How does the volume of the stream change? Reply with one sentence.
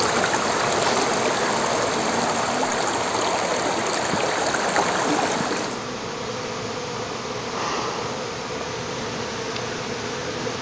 The volume of the stream stays about the same.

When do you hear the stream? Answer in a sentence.
You can hear the stream from 0.0 to 5.8 s.